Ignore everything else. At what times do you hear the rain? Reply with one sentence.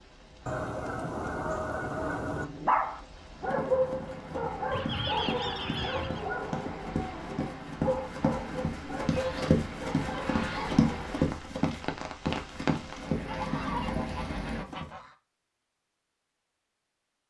The rain can be heard from 0.0 to 14.7 s.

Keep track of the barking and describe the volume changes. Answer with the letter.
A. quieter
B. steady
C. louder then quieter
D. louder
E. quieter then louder
A.